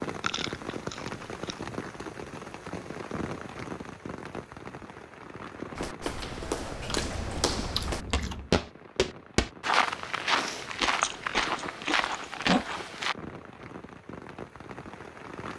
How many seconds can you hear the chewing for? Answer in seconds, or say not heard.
5 s.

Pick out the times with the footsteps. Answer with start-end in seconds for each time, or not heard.
5.8-13.2.